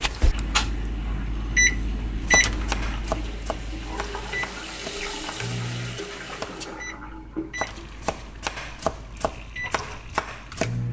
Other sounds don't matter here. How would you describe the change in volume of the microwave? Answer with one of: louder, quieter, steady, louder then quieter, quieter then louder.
quieter.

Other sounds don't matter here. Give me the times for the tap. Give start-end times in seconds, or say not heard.
0.1-10.8.